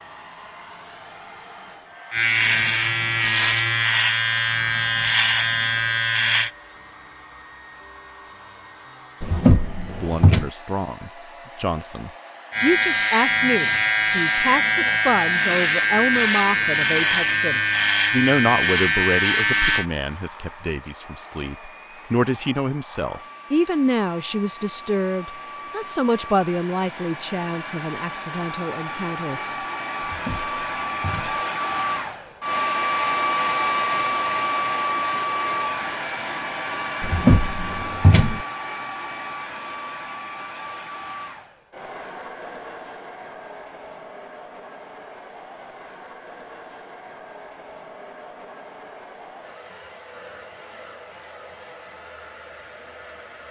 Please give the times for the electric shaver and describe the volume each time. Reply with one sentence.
You can hear the electric shaver from 2.1 to 6.5 s, at a steady volume; and from 12.5 to 19.9 s, at a steady volume.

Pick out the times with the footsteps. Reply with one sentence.
You can't hear the footsteps here.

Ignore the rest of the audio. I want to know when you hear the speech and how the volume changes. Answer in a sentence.
The speech can be heard from 9.9 to 29.5 s, at a steady volume.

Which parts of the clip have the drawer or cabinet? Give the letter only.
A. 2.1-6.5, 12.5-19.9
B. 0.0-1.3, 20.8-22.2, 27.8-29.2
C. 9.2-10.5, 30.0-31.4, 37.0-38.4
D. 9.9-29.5
C.